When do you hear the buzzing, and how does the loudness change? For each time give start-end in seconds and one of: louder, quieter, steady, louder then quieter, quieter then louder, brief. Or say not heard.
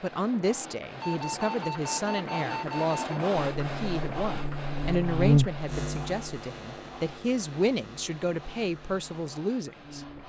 3.5-10.2 louder then quieter.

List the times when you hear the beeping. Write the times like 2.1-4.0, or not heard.
1.0-3.1.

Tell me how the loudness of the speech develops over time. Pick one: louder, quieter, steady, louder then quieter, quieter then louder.
steady.